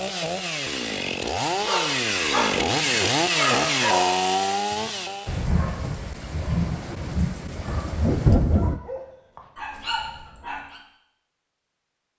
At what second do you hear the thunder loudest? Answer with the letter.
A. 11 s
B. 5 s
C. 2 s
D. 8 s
D.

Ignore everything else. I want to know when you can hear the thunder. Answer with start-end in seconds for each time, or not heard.
5.2-8.8.